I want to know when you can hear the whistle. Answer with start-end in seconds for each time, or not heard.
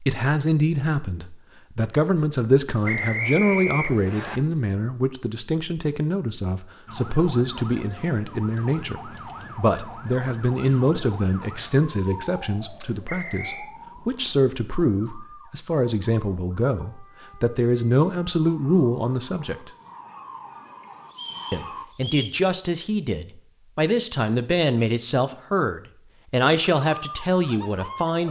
2.9-4.4, 13.1-13.7, 21.1-22.4.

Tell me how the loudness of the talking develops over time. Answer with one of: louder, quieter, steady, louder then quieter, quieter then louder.
steady.